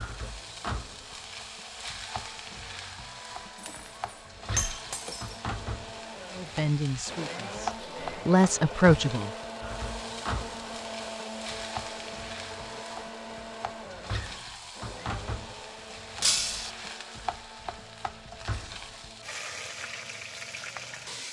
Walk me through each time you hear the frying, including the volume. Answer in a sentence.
You can hear the frying from 0.0 to 21.2 s, at a steady volume.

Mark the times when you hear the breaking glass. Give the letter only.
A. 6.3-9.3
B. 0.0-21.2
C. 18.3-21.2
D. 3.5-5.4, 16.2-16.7
D.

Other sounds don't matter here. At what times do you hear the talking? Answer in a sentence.
The talking can be heard from 6.3 to 9.3 s.